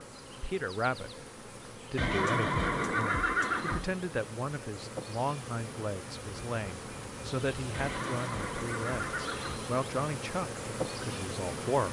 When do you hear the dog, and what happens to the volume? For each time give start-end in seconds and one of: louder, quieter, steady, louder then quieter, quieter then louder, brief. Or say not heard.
not heard.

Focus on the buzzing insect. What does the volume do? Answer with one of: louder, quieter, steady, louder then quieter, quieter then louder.
louder.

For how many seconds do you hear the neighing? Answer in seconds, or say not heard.
4 s.